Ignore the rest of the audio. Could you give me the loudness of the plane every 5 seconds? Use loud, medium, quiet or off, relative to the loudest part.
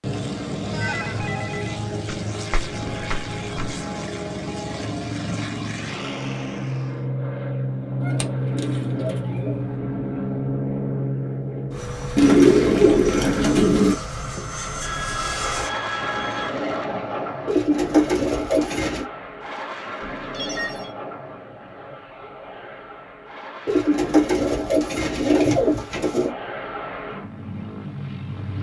loud, loud, loud, loud, medium, medium.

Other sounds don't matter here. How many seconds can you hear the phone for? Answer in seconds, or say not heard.
5 s.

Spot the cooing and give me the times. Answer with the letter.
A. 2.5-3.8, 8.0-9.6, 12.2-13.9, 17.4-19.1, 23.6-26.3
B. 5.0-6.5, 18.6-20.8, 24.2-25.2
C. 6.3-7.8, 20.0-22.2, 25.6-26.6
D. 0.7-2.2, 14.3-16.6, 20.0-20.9
A.